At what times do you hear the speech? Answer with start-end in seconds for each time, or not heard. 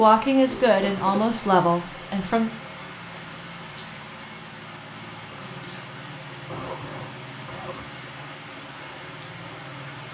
0.0-2.5.